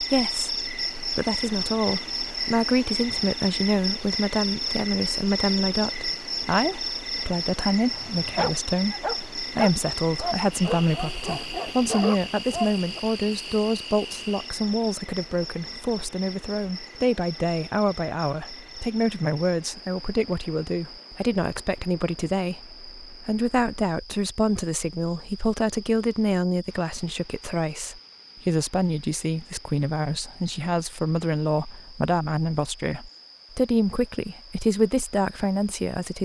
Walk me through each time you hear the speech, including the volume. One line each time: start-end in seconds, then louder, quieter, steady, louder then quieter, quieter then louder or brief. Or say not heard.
0.0-36.2 steady.